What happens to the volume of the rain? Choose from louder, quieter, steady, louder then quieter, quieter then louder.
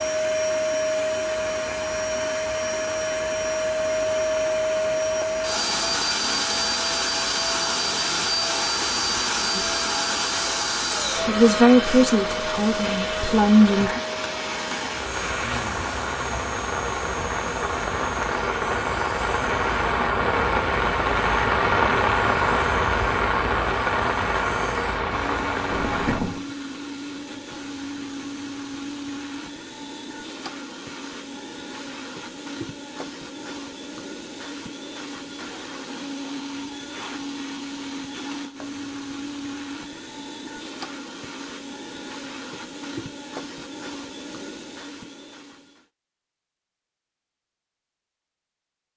louder.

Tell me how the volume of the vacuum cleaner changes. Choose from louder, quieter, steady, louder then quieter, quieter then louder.
quieter.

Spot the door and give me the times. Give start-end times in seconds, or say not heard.
not heard.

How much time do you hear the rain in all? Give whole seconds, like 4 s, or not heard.
26 s.